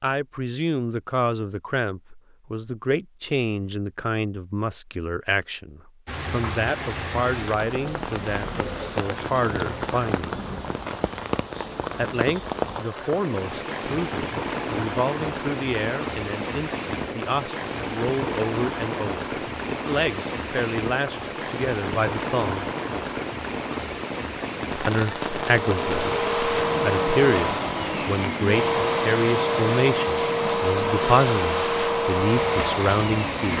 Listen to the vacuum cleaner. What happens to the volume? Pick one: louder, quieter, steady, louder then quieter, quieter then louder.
steady.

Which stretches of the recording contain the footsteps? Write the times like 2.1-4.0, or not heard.
not heard.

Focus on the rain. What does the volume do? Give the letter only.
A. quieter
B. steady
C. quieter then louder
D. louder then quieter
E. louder
B.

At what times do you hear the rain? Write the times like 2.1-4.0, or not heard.
6.0-33.5.